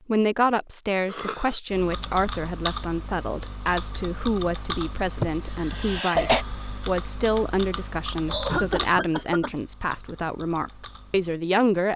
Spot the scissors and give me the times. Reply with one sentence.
You can't hear the scissors here.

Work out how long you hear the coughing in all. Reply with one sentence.
You can hear the coughing for 3 seconds altogether.